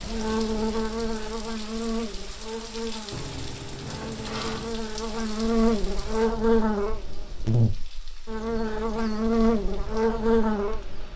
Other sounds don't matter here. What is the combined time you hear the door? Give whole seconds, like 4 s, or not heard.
2 s.